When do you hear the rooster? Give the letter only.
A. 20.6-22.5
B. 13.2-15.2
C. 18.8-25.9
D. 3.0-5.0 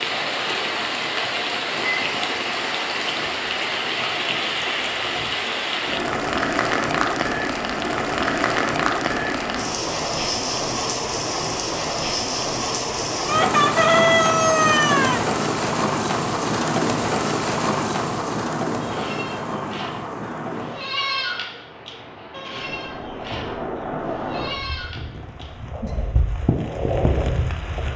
B.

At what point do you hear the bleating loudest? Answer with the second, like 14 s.
21 s.